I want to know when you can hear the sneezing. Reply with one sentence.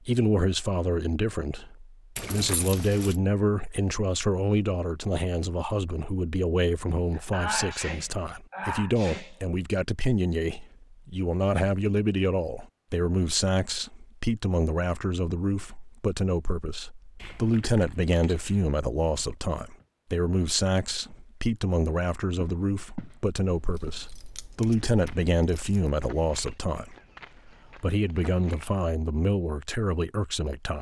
The sneezing can be heard from 7.2 to 9.4 s.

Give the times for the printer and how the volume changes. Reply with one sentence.
The printer can't be heard in this clip.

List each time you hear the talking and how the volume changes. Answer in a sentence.
You can hear the talking from 0.1 to 26.9 s, at a steady volume; and briefly from 27.8 to 30.7 s.